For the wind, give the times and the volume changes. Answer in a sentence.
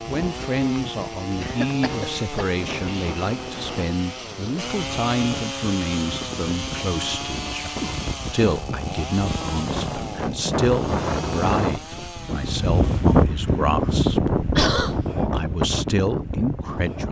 You can hear the wind from 0.0 to 17.0 s, getting louder.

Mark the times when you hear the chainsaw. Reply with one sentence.
You can hear the chainsaw from 0.0 to 13.2 s.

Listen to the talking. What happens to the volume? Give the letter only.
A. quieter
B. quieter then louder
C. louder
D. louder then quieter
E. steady
E.